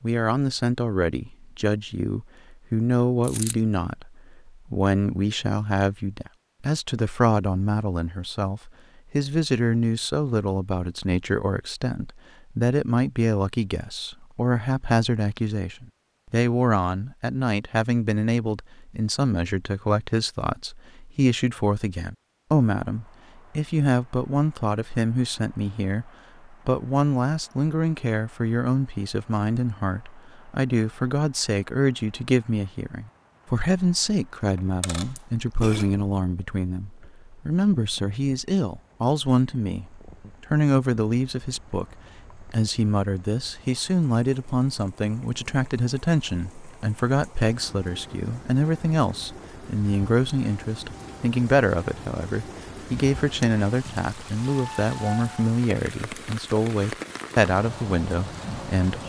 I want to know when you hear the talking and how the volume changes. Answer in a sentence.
The talking can be heard from 0.0 to 59.0 s, at a steady volume.